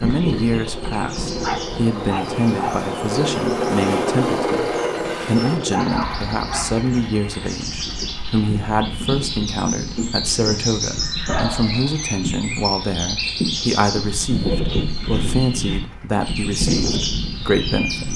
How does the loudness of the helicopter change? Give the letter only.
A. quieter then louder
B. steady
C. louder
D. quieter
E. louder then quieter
D.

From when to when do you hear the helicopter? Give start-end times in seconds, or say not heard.
0.0-18.1.